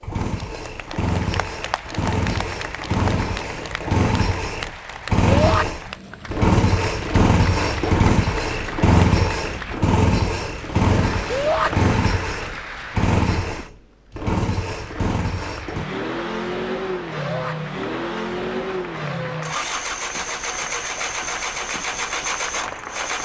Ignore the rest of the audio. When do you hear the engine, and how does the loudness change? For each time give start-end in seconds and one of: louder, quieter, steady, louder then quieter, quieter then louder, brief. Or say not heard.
0.0-23.1 louder then quieter.